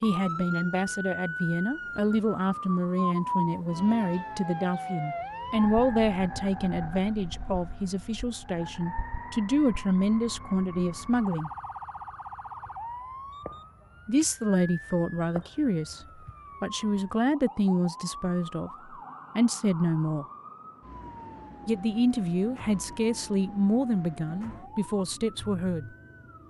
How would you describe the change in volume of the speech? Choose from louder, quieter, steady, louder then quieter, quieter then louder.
steady.